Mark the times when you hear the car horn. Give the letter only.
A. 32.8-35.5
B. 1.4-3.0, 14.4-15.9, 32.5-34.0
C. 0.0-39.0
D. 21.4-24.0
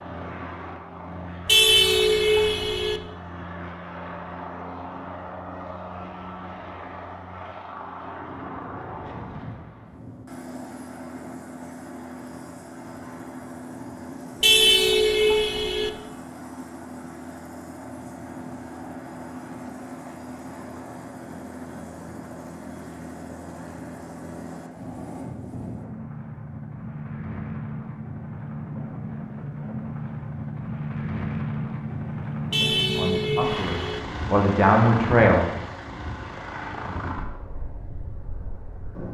B.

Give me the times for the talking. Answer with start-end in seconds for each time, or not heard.
32.8-35.5.